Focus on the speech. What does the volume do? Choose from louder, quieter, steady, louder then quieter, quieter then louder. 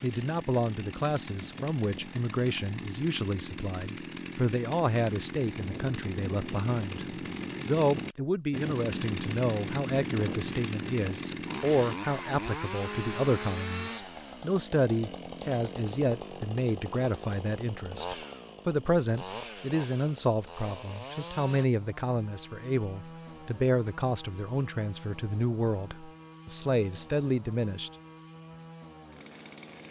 steady.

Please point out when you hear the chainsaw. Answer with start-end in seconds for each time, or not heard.
0.0-29.8.